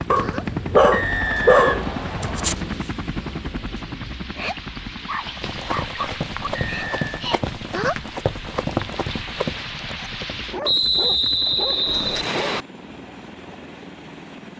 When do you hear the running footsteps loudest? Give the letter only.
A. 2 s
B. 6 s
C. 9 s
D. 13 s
C.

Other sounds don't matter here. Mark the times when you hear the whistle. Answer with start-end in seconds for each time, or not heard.
0.9-2.5, 6.5-7.2, 10.6-12.7.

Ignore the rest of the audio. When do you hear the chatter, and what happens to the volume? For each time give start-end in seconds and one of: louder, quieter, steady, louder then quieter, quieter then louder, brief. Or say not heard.
not heard.